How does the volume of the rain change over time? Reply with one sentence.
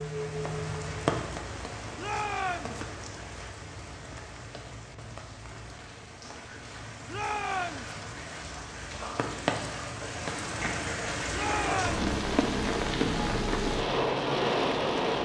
The loudness of the rain goes down, then up.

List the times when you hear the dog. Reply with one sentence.
You can't hear the dog here.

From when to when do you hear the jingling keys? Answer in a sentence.
You can't hear the jingling keys here.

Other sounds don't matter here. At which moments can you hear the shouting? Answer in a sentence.
The shouting can be heard from 1.9 to 2.8 s, from 7.0 to 7.9 s and from 11.3 to 12.0 s.